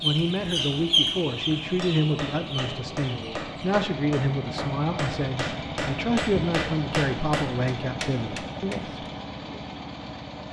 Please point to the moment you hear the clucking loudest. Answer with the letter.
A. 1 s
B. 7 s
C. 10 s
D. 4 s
A.